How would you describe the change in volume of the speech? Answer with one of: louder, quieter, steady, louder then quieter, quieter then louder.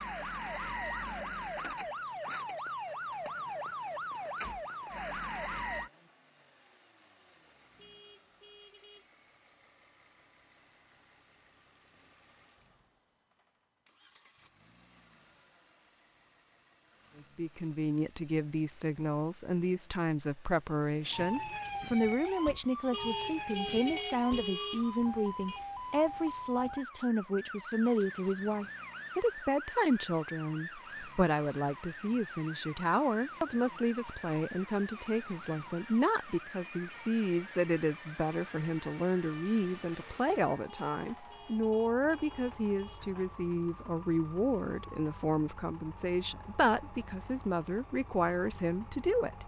steady.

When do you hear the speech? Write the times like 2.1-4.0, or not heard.
17.1-49.4.